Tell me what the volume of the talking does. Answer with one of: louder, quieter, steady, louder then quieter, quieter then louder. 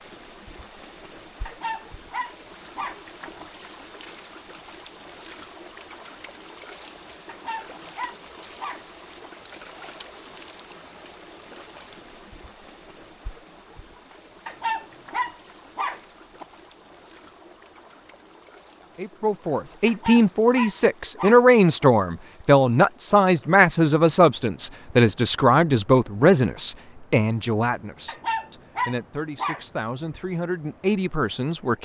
quieter.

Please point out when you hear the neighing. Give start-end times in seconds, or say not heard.
not heard.